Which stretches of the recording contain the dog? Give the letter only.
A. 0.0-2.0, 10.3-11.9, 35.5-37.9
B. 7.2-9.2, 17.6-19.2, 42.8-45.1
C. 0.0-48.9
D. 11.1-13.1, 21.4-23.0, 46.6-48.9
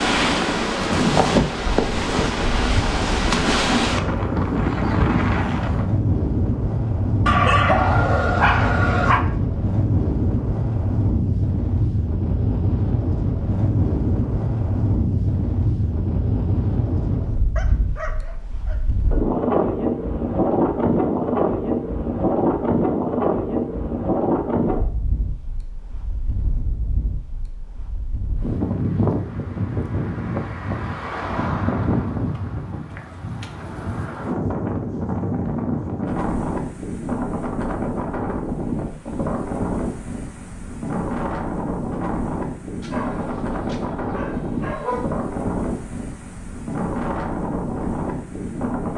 B.